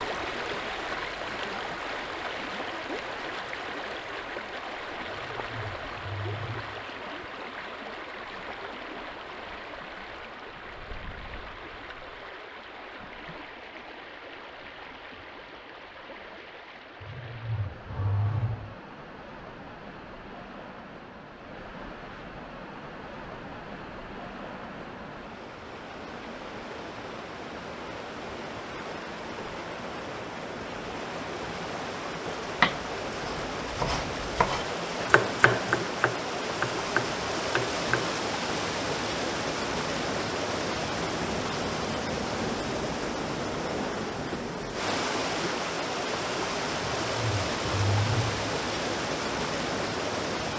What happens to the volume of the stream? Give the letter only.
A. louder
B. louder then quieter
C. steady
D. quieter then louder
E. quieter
D.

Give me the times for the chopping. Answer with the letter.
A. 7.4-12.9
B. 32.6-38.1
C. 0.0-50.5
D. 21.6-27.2
B.